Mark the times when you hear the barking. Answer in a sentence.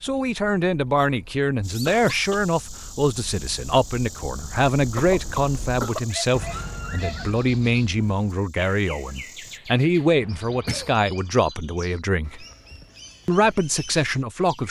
You can hear the barking from 6.0 to 7.2 s.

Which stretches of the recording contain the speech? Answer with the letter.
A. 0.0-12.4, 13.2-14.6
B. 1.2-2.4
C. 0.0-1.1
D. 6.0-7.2
A.